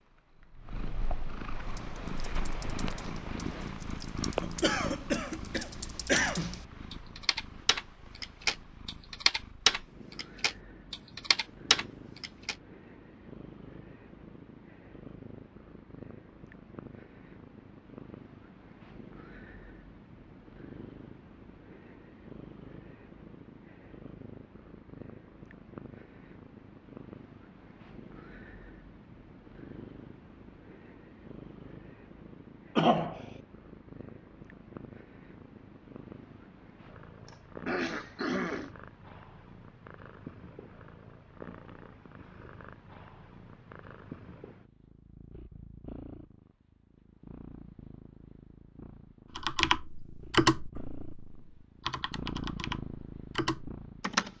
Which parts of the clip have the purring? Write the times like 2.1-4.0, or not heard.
0.0-54.3.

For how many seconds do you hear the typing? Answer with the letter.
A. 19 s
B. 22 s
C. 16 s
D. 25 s
C.